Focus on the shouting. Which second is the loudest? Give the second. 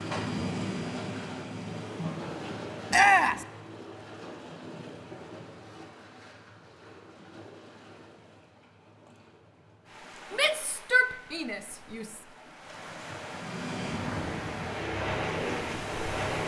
3 s.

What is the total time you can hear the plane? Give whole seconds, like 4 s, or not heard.
5 s.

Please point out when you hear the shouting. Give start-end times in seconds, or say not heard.
2.9-3.5, 10.3-12.2.